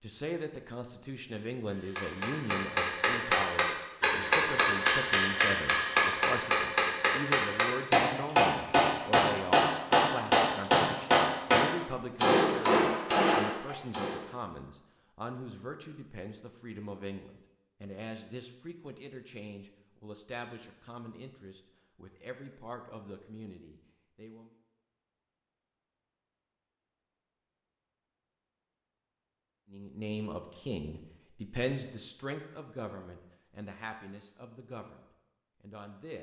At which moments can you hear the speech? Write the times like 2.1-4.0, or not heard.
0.0-24.5, 29.7-36.1.